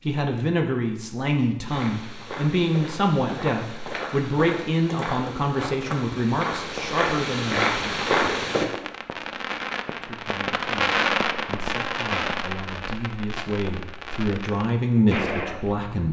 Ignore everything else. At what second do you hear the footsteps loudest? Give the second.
8 s.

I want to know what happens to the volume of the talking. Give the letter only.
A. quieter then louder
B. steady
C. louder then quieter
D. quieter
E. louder
A.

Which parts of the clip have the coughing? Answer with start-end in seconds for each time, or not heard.
not heard.